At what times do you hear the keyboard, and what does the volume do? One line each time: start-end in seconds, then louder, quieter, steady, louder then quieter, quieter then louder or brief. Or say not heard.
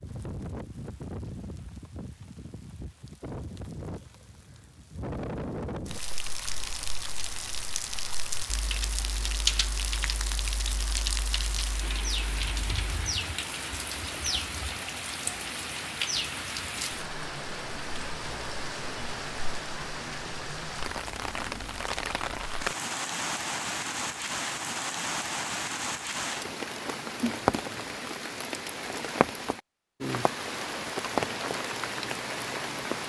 5.9-12.9 louder then quieter.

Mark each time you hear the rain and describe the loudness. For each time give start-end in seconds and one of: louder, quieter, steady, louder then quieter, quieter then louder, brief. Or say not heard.
0.0-33.0 louder.